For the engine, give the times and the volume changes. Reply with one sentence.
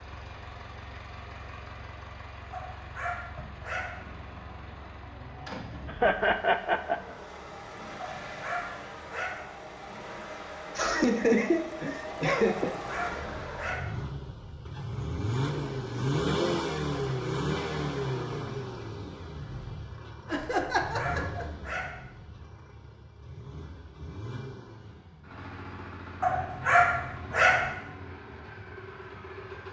The engine can be heard from 0.0 to 29.6 s, getting louder then quieter.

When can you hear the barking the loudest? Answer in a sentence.
The loudest moment of the barking is at 27 seconds.